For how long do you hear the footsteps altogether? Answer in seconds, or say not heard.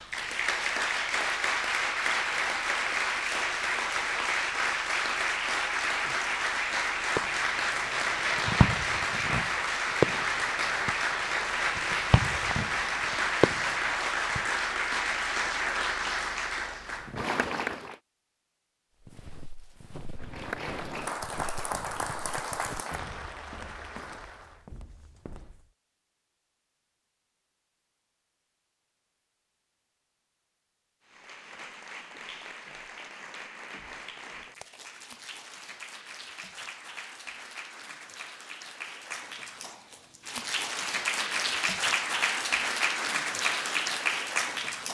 7 s.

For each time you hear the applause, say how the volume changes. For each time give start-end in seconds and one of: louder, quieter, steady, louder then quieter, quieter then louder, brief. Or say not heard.
0.0-17.9 steady
20.1-24.6 quieter
31.1-44.8 louder.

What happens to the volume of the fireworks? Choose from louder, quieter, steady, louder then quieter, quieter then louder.
quieter then louder.